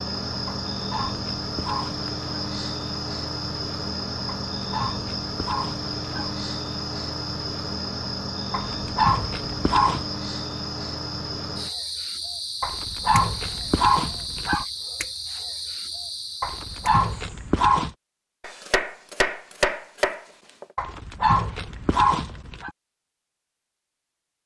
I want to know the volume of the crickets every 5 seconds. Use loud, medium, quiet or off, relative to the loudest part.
loud, loud, loud, medium, off.